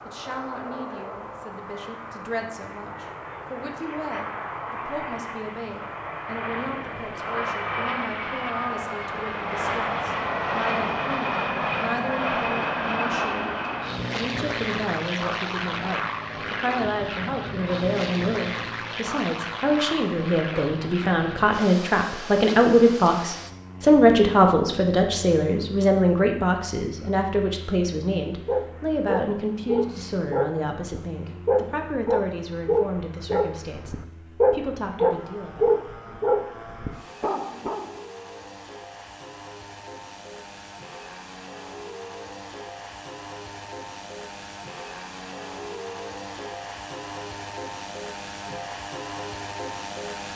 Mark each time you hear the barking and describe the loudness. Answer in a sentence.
You can hear the barking from 28.4 to 38.0 s, getting louder then quieter.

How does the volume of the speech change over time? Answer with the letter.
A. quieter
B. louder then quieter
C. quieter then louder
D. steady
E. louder
B.